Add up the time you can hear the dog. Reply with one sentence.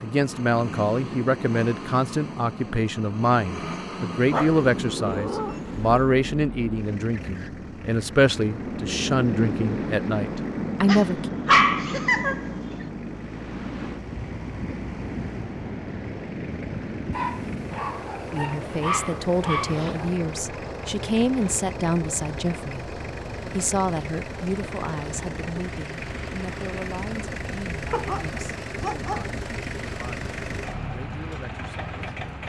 The dog can be heard for 8 seconds in total.